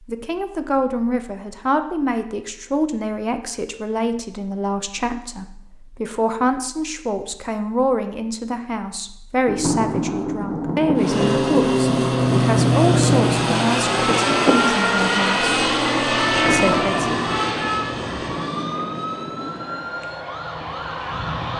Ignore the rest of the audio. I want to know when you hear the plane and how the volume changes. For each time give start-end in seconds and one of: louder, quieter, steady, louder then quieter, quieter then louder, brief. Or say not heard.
10.9-21.5 quieter.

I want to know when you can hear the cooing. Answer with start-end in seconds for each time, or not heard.
not heard.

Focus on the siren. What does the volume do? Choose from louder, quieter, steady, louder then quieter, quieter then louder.
quieter.